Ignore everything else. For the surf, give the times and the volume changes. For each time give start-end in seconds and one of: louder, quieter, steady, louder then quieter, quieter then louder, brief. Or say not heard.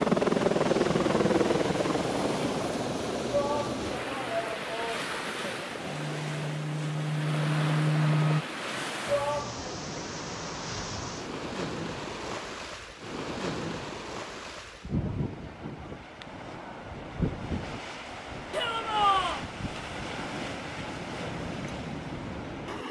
0.1-22.8 steady.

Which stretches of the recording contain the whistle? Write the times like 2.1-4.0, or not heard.
not heard.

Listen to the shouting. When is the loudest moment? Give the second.
19 s.